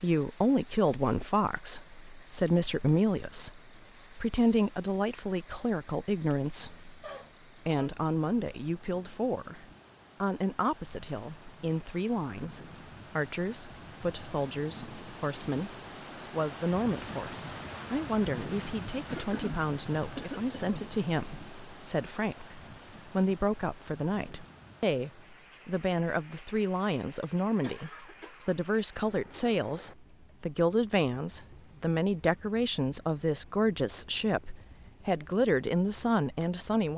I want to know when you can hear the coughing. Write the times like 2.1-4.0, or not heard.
7.0-7.9, 19.1-20.8, 27.6-28.6.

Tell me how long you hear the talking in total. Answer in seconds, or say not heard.
36 s.